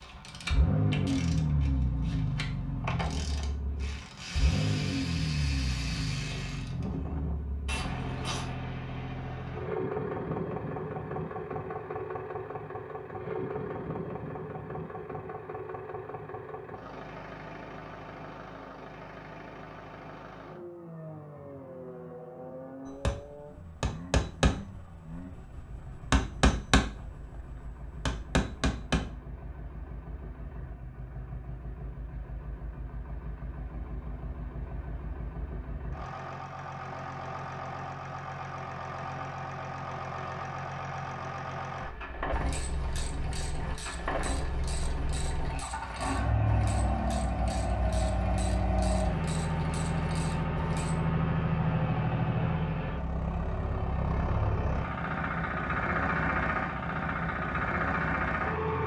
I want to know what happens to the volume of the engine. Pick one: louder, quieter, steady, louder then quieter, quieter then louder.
quieter then louder.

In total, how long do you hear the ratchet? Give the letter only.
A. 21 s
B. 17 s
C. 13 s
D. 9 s
B.